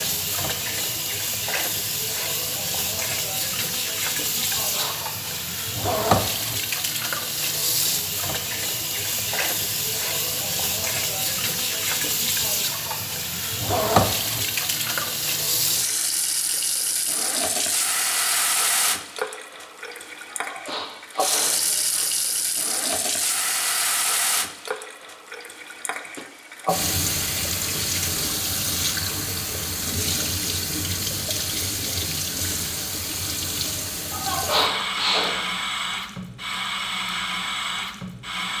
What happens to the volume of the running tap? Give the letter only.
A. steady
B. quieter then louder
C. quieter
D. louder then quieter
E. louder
A.